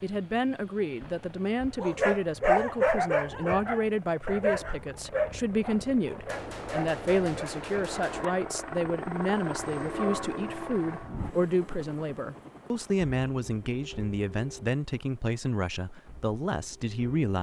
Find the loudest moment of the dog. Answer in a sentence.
The volume of the dog peaks at 3 seconds.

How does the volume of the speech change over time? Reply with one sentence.
The loudness of the speech stays about the same.